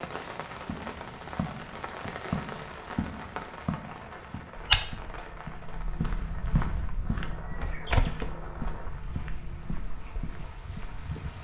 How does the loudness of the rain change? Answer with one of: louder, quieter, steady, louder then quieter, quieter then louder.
quieter.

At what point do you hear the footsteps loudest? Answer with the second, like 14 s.
5 s.